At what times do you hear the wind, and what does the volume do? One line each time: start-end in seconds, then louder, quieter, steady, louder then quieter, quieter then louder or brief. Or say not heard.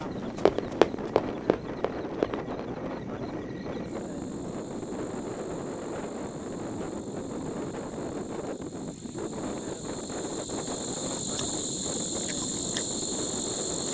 0.0-13.8 steady.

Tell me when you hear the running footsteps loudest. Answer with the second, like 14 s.
1 s.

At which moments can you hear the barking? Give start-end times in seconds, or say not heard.
not heard.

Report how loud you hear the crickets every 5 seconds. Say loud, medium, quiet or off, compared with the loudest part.
quiet, quiet, loud.